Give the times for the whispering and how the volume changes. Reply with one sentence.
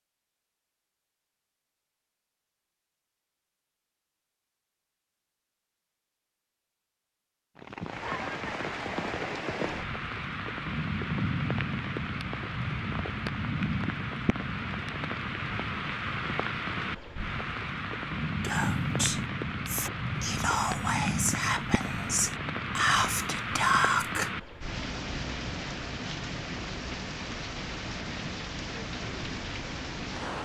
You can hear the whispering from 18.4 to 24.3 s, getting louder.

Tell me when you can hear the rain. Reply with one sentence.
You can hear the rain from 7.5 to 30.4 s.